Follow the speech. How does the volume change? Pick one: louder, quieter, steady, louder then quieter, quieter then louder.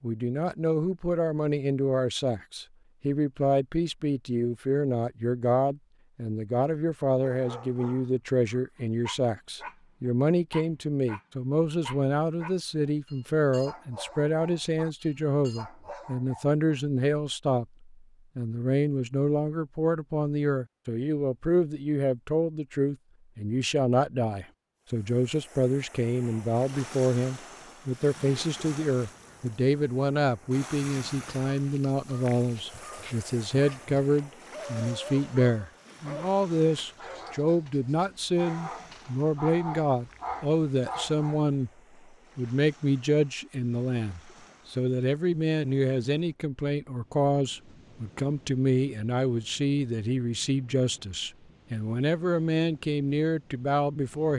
steady.